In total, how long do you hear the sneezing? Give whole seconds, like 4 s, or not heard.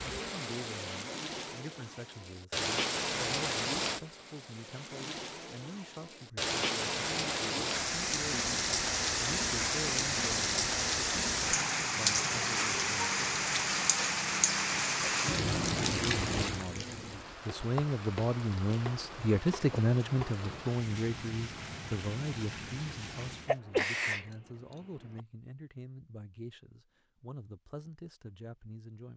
2 s.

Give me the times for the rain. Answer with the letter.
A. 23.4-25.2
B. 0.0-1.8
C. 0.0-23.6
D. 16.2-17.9
C.